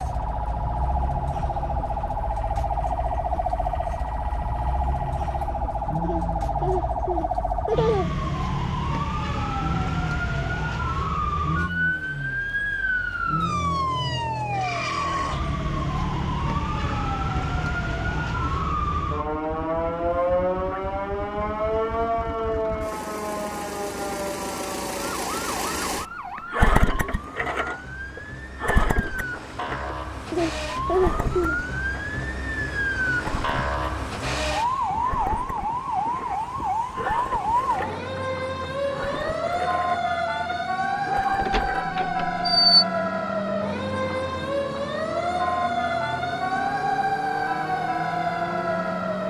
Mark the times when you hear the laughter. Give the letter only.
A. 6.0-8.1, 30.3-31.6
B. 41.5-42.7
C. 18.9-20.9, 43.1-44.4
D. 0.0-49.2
A.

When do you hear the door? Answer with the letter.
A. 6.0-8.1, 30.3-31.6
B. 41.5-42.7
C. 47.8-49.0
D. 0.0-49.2
B.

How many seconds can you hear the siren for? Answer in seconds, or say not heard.
49 s.